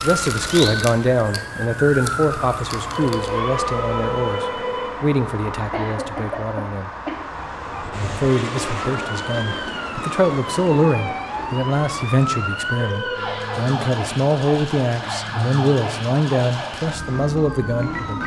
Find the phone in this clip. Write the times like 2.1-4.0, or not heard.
2.9-4.9, 12.7-13.8.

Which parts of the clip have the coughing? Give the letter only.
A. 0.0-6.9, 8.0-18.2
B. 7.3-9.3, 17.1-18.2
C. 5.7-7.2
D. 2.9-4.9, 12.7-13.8
C.